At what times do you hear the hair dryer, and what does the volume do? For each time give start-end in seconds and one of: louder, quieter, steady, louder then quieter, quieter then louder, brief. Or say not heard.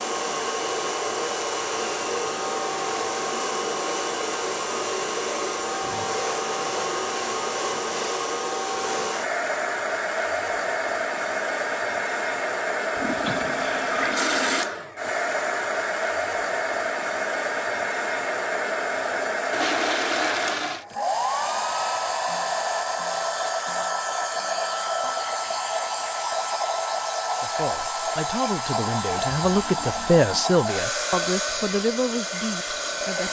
0.0-33.2 steady.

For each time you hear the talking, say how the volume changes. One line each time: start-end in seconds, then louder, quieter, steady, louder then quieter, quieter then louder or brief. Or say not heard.
27.4-33.2 louder then quieter.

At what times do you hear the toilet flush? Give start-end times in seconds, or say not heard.
12.9-14.7, 19.5-20.9.